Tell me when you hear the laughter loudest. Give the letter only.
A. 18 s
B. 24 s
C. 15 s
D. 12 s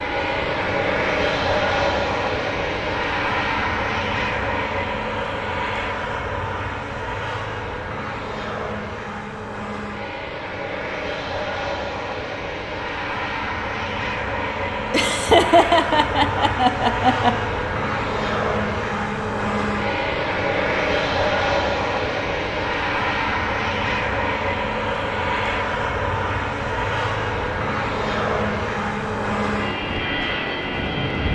C.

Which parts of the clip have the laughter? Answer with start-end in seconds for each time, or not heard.
14.9-17.4.